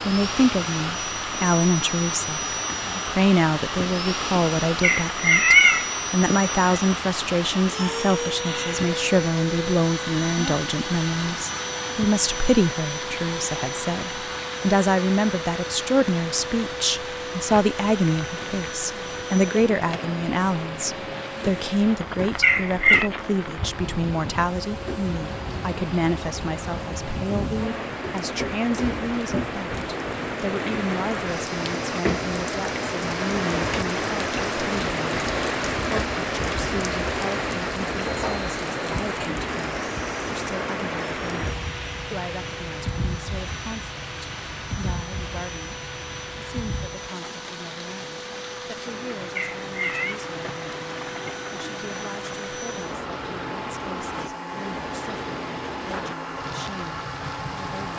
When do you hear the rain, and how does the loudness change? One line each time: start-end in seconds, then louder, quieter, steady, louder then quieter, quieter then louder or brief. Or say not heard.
0.0-57.9 louder then quieter.